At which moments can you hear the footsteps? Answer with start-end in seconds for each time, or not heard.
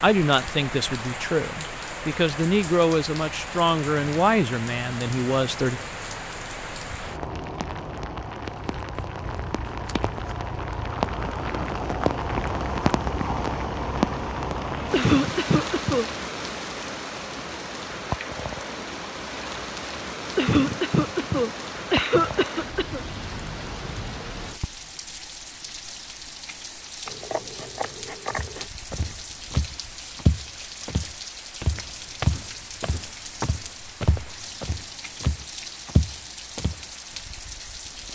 28.4-36.8.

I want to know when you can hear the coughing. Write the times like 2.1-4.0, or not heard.
14.9-16.1, 20.4-23.0.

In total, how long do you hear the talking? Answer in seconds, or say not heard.
6 s.